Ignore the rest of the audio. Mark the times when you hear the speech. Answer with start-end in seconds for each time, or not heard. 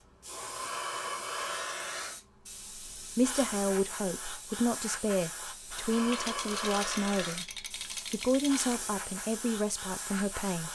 3.0-10.7.